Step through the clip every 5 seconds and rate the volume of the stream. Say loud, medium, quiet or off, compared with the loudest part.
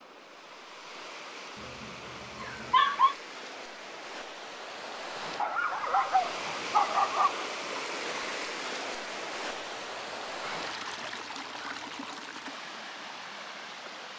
medium, loud, loud.